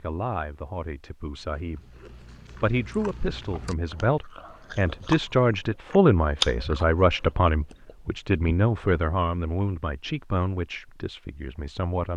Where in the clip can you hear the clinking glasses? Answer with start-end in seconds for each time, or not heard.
not heard.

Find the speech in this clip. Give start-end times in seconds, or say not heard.
0.0-1.8, 2.6-12.1.